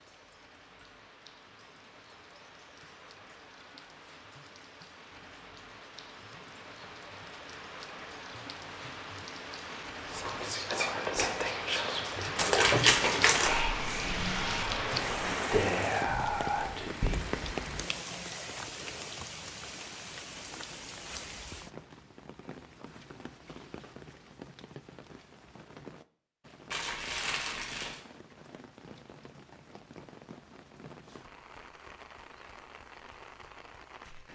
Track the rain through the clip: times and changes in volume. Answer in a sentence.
You can hear the rain from 0.0 to 34.3 s, getting louder then quieter.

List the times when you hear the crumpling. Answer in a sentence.
You can hear the crumpling from 12.3 to 13.7 s and from 26.7 to 28.0 s.